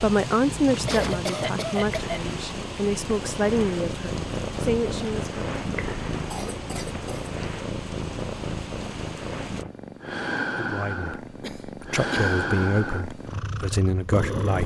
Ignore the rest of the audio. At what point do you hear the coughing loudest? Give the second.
1 s.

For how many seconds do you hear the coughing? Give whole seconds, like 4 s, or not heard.
3 s.